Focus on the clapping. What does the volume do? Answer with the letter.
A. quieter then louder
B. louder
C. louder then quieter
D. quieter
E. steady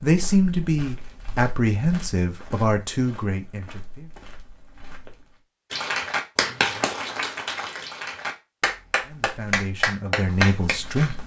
A.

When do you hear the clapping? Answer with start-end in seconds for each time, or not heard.
5.7-10.8.